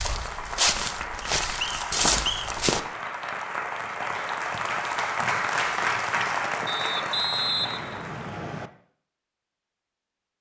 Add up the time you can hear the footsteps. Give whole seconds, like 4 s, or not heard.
3 s.